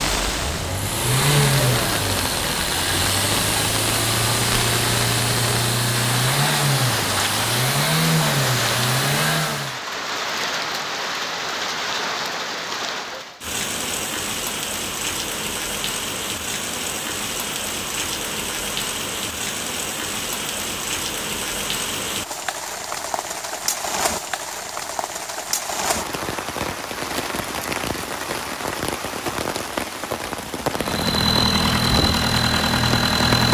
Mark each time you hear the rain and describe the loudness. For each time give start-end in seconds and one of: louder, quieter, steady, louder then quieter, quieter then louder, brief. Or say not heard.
0.0-33.4 steady.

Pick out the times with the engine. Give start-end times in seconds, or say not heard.
0.1-9.8, 30.7-33.4.